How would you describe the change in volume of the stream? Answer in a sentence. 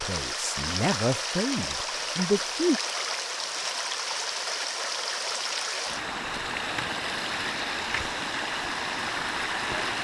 The volume of the stream stays about the same.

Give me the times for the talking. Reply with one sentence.
You can hear the talking from 0.0 to 2.8 s.